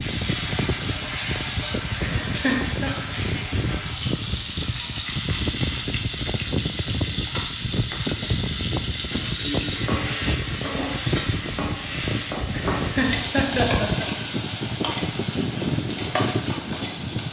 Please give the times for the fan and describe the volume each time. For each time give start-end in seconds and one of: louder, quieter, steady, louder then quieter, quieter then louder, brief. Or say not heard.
0.0-17.2 steady.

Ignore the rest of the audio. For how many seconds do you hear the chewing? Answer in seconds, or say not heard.
not heard.